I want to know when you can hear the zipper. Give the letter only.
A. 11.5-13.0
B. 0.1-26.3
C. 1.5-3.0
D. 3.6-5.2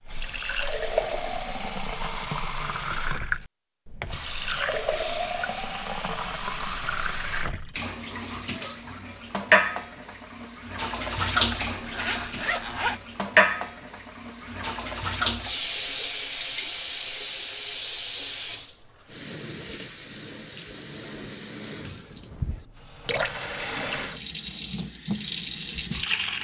A.